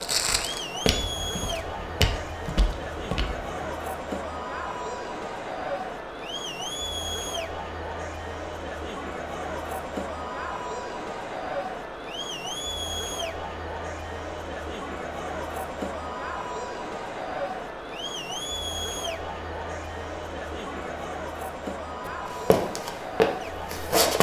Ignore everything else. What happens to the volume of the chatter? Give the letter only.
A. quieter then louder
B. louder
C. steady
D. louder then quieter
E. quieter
C.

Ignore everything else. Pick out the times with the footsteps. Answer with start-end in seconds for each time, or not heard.
0.0-3.6, 22.1-24.1.